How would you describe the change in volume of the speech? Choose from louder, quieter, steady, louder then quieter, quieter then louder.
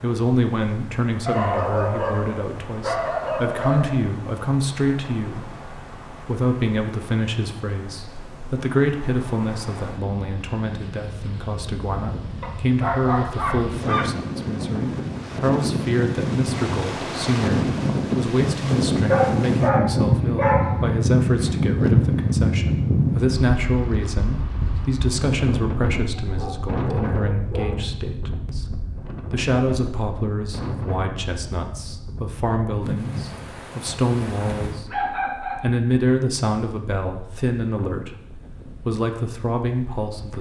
steady.